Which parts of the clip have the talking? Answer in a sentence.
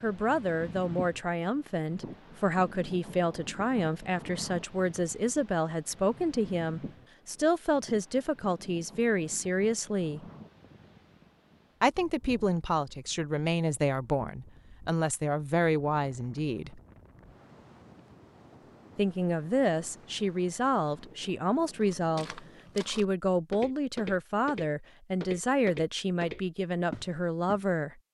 You can hear the talking from 0.0 to 10.2 s, from 11.8 to 16.8 s and from 18.9 to 27.9 s.